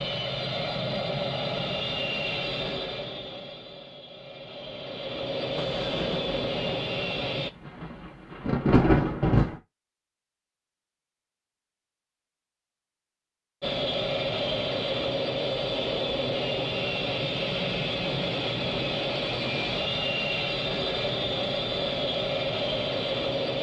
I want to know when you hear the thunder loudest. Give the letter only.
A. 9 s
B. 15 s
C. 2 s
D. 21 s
A.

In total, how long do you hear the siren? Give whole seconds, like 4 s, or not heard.
not heard.